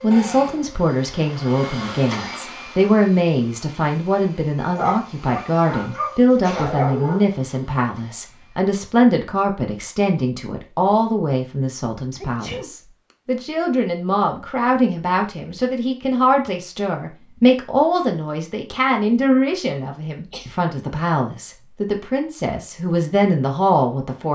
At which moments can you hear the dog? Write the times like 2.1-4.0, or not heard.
4.8-7.2.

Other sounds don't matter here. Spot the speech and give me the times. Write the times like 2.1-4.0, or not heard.
0.0-24.3.